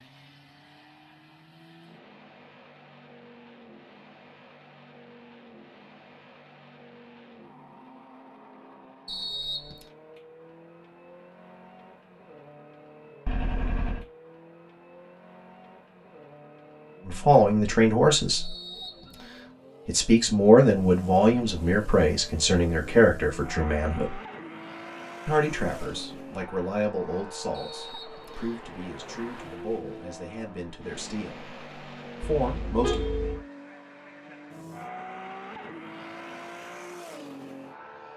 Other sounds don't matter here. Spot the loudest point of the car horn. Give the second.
33 s.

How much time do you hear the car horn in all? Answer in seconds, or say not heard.
2 s.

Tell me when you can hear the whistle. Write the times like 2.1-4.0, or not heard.
9.1-9.9, 18.4-19.6, 27.5-28.6.